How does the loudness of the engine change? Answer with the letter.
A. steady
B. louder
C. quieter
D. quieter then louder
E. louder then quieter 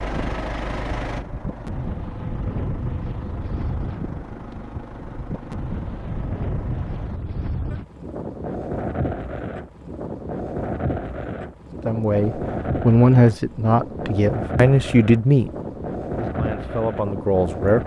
C.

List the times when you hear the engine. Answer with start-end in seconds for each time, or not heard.
0.0-7.2.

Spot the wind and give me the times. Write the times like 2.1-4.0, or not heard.
0.0-17.8.